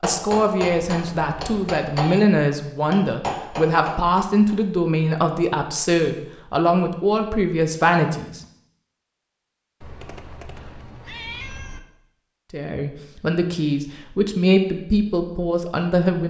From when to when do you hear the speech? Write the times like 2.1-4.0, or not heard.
0.0-8.4, 12.5-16.2.